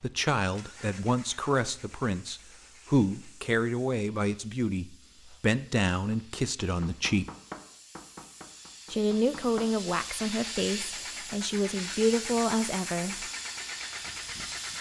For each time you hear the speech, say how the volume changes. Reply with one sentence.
You can hear the speech from 0.0 to 7.3 s, at a steady volume; and from 8.9 to 13.3 s, getting quieter then louder.